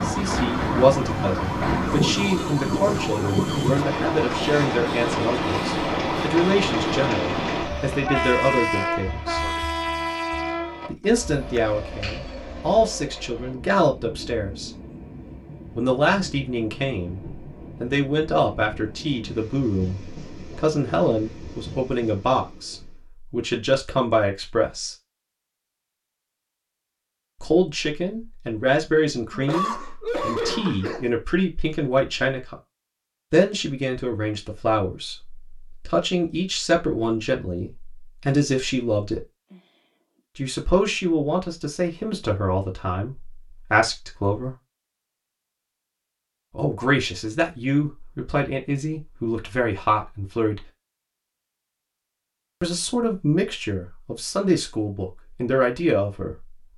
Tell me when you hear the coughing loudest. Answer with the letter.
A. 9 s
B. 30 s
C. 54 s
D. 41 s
B.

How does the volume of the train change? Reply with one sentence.
The loudness of the train goes down.